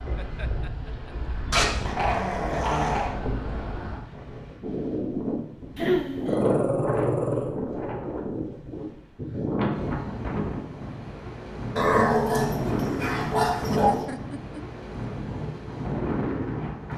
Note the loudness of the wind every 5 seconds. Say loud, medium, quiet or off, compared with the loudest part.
medium, loud, loud, loud.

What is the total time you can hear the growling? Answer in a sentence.
The growling can be heard for 5 seconds in total.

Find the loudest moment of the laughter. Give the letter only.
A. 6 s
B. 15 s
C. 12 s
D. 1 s
A.